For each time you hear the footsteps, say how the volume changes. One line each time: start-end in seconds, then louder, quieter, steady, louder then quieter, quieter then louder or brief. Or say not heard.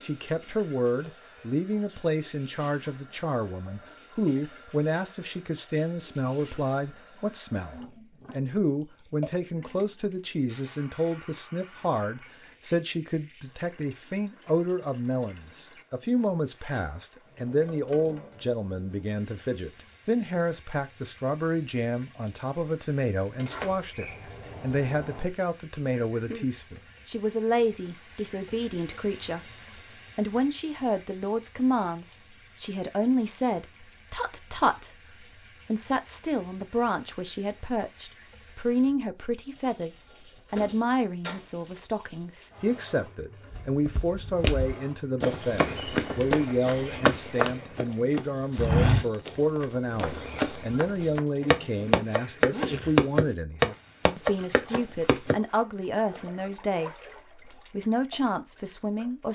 43.5-55.4 louder.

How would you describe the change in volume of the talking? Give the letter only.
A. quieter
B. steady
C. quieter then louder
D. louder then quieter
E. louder
B.